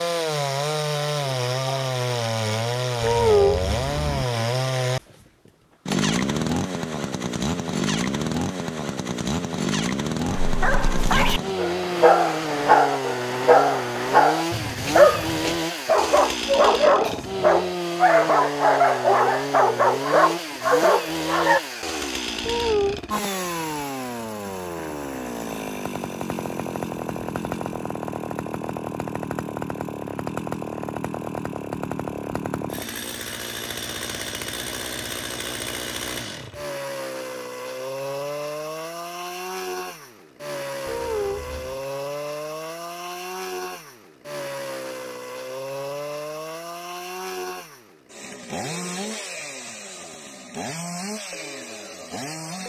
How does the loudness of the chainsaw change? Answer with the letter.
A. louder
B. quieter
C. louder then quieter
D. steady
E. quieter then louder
B.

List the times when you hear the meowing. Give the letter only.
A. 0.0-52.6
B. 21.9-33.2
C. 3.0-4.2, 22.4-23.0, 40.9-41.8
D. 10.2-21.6
C.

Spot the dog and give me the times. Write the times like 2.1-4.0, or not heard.
10.2-21.6.